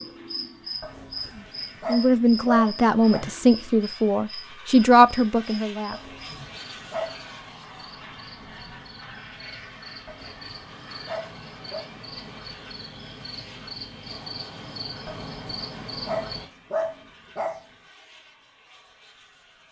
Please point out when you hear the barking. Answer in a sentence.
You can hear the barking from 0.8 to 3.2 s, from 5.9 to 7.2 s, from 10.1 to 11.8 s and from 15.1 to 17.6 s.